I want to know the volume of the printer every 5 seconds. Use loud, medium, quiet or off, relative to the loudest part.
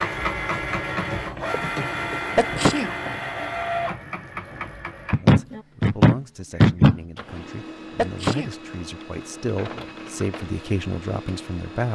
loud, medium, medium.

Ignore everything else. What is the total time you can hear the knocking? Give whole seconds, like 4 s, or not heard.
2 s.